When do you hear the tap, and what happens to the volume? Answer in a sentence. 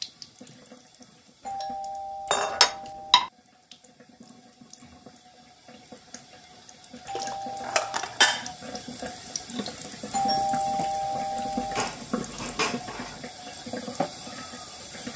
The tap can be heard from 0.0 to 15.1 s, getting louder.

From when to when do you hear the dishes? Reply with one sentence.
You can hear the dishes from 2.3 to 3.3 s, from 7.0 to 8.5 s and from 11.8 to 13.2 s.